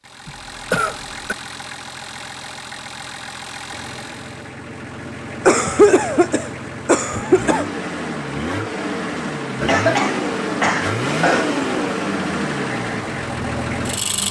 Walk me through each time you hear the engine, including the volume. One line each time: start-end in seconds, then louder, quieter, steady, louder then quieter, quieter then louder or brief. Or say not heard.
0.0-14.2 louder.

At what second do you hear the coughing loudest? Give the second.
6 s.